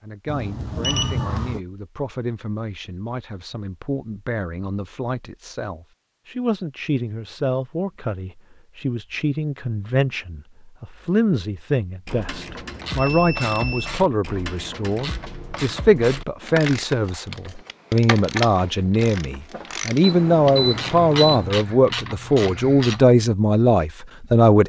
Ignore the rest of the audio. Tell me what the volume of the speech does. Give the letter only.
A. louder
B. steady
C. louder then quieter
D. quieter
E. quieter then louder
A.